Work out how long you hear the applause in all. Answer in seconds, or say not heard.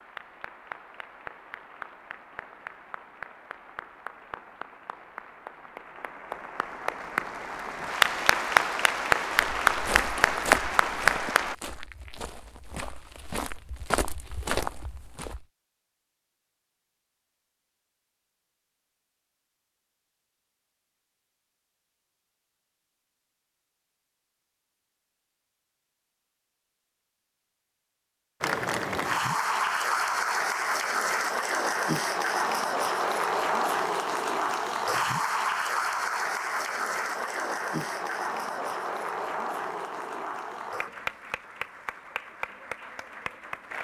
27 s.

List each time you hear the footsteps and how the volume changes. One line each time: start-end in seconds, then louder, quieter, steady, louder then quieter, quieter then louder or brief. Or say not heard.
9.3-15.4 quieter then louder.